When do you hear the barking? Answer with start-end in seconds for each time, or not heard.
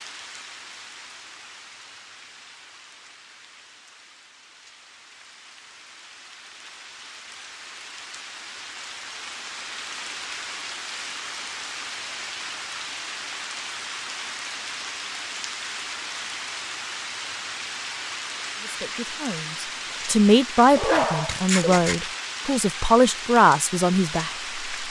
20.8-22.1.